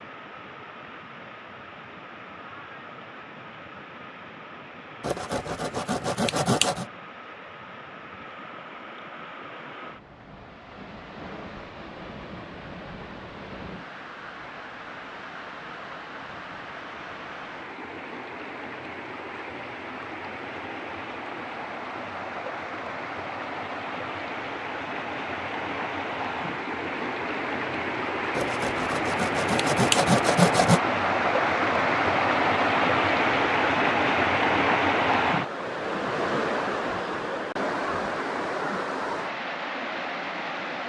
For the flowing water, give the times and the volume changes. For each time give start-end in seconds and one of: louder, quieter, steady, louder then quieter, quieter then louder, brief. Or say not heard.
0.0-40.8 louder.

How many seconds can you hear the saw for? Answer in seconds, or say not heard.
4 s.